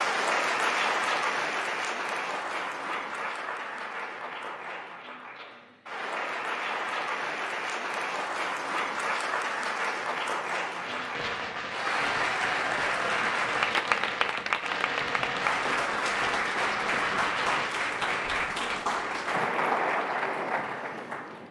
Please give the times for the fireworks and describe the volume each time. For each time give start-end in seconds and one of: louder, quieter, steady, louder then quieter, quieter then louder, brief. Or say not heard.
10.8-18.3 steady.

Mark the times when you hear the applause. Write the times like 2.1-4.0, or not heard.
0.0-21.4.